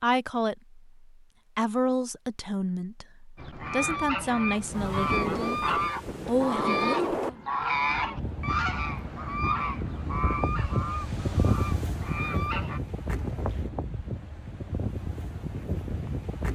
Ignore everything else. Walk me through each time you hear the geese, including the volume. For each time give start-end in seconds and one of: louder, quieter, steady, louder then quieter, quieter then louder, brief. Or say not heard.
3.4-12.8 quieter.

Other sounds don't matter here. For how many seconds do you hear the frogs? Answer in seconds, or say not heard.
not heard.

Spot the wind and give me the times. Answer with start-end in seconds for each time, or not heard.
4.5-16.5.